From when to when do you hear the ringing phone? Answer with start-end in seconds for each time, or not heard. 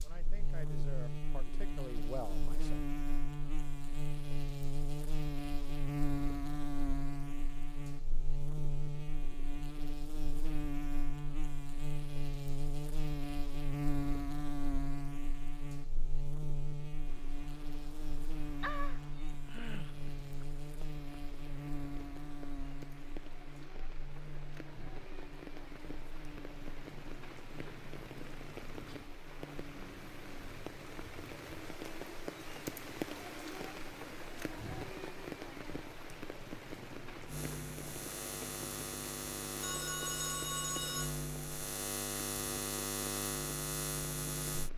18.6-20.4, 39.6-41.1.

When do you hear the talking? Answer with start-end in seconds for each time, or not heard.
0.0-2.8.